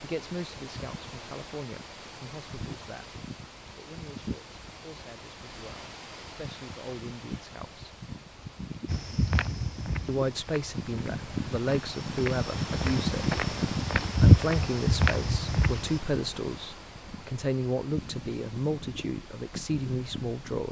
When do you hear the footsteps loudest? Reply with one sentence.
The volume of the footsteps peaks at 14 seconds.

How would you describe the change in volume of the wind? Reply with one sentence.
The loudness of the wind goes up, then down.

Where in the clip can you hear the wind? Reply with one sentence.
You can hear the wind from 0.0 to 20.6 s.